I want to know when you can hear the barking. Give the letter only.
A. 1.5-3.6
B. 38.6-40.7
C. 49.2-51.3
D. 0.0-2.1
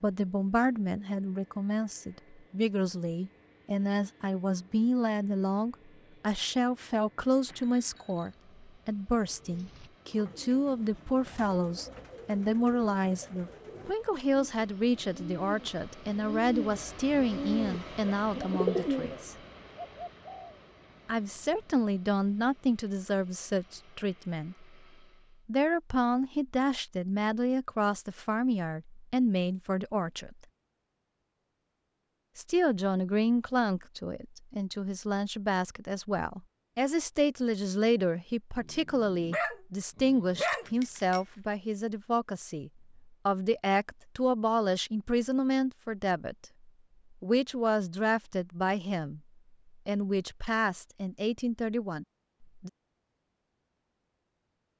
B.